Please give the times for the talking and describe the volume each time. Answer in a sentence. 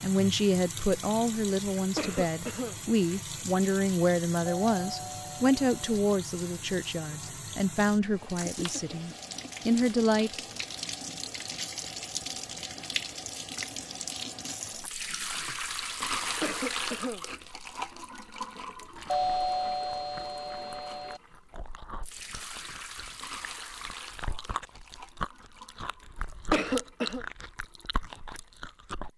The talking can be heard from 0.0 to 10.3 s, at a steady volume.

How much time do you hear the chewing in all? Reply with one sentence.
The chewing can be heard for 10 seconds in total.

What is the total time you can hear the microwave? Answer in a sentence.
You can't hear the microwave here.